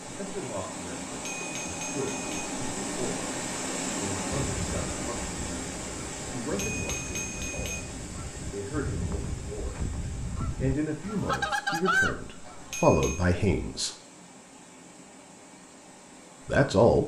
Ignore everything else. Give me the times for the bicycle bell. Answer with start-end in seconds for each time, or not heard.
1.2-2.5, 6.5-7.8, 12.4-13.2.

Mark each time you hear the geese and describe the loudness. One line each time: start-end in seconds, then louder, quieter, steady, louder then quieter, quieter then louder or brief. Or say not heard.
4.4-12.6 louder.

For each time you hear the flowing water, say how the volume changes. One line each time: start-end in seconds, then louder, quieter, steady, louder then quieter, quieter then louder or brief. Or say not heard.
0.0-17.0 quieter.